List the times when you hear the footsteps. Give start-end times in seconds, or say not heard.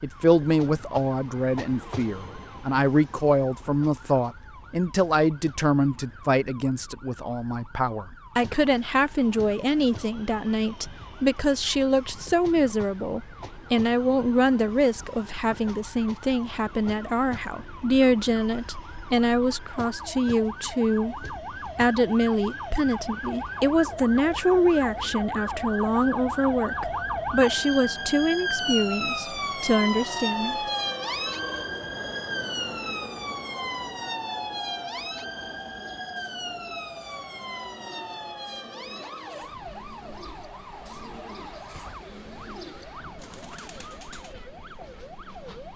not heard.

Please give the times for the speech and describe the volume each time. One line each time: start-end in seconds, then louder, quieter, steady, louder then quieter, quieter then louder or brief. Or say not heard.
0.0-30.7 steady.